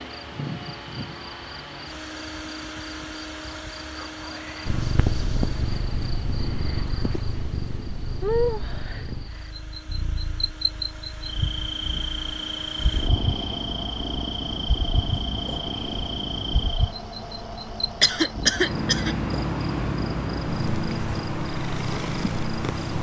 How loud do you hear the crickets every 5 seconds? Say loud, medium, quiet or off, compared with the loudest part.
quiet, loud, loud, loud, loud.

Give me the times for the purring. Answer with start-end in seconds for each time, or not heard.
4.7-16.7, 18.4-22.9.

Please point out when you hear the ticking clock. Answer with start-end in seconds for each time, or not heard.
not heard.